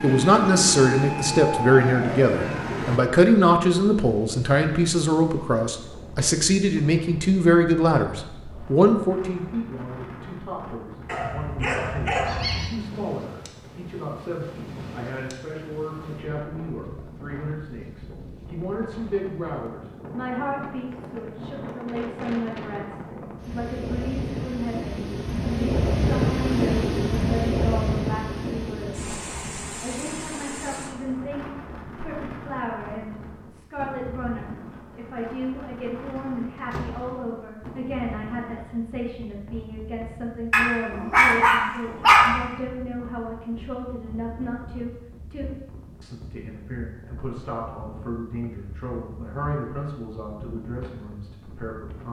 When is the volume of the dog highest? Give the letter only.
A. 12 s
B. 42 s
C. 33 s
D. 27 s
B.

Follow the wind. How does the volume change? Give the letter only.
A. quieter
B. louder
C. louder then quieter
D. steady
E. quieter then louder
C.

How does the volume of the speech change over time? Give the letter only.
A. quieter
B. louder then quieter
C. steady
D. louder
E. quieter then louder
A.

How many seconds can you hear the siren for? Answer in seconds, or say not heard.
3 s.